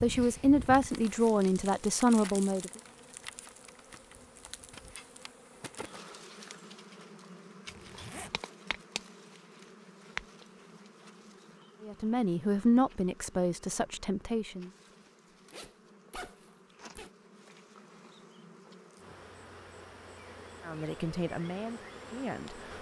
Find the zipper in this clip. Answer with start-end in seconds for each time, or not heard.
7.7-8.4, 15.5-17.1.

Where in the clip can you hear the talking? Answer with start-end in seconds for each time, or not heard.
0.0-2.7, 11.8-14.7, 20.6-22.7.